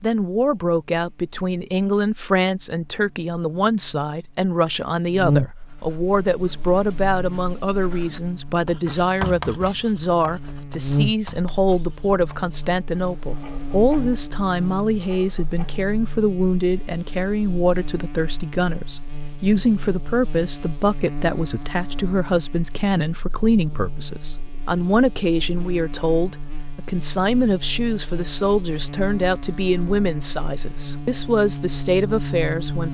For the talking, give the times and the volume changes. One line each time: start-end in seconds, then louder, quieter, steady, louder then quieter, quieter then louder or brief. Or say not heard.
0.0-32.8 steady.